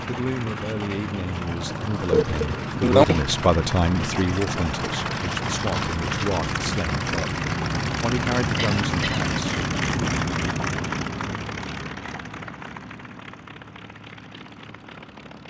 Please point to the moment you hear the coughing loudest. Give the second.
3 s.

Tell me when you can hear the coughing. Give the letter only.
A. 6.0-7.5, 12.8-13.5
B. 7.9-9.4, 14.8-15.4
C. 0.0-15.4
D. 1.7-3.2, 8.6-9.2
D.